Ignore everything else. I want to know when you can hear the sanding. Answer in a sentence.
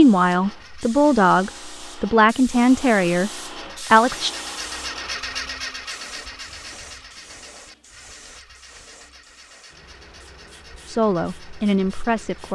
You can't hear the sanding here.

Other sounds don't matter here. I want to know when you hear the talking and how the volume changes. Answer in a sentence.
You can hear the talking from 0.0 to 4.3 s, getting quieter; and briefly from 10.8 to 12.5 s.